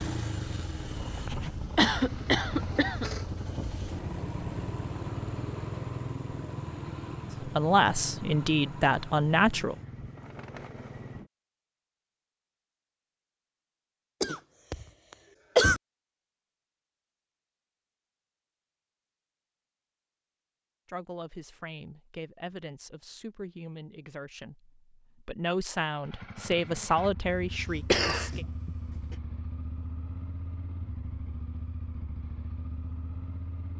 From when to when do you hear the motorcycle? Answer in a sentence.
You can hear the motorcycle from 0.0 to 11.3 s and from 26.0 to 33.7 s.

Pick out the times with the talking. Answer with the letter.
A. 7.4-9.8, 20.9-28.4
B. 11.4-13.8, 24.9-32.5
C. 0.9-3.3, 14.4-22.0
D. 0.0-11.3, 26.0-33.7
A.